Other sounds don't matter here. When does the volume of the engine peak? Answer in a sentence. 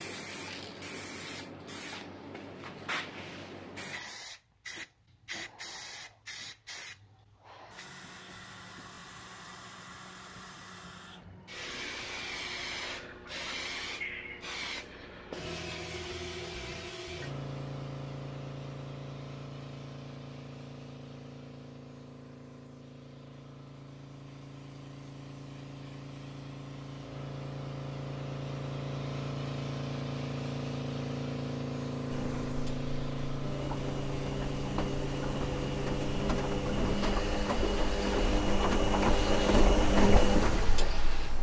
The volume of the engine peaks at 40 seconds.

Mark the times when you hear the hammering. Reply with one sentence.
The hammering can't be heard in this clip.